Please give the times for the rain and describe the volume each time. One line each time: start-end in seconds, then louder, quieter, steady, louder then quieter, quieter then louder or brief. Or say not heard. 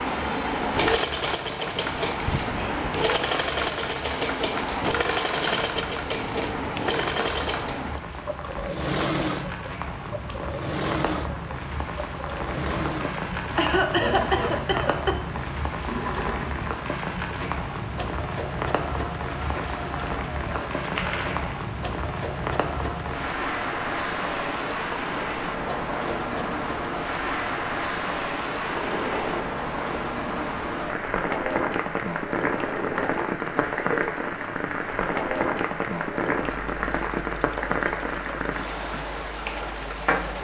0.0-40.4 louder.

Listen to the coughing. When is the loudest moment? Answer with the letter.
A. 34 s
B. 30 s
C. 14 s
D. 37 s
C.